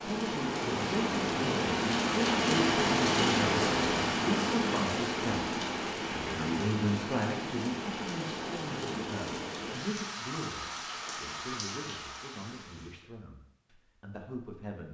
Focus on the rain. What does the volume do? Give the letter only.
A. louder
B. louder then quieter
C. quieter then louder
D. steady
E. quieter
E.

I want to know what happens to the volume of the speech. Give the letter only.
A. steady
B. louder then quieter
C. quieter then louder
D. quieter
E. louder
D.